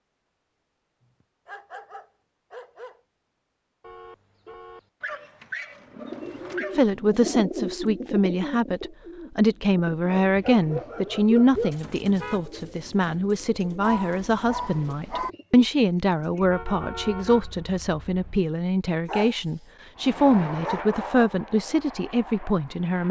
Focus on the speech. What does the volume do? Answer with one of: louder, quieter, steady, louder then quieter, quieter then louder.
steady.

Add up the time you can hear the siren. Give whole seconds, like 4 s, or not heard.
not heard.